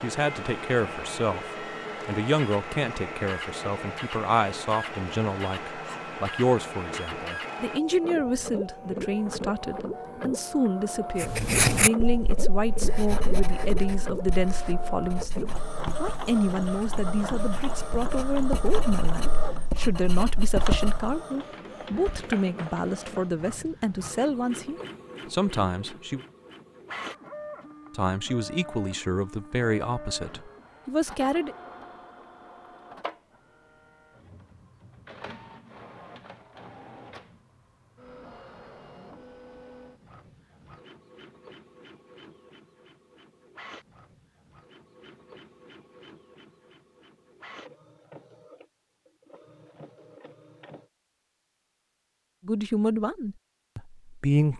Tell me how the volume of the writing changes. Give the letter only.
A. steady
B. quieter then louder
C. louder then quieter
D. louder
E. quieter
B.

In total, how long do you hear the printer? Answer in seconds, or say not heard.
51 s.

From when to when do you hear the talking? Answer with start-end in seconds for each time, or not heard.
0.0-26.2, 27.9-31.6, 52.5-54.5.